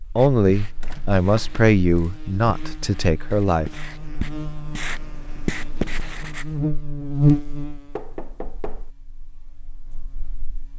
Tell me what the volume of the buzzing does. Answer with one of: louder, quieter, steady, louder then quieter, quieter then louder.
louder then quieter.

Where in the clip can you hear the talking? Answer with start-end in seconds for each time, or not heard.
0.1-3.7.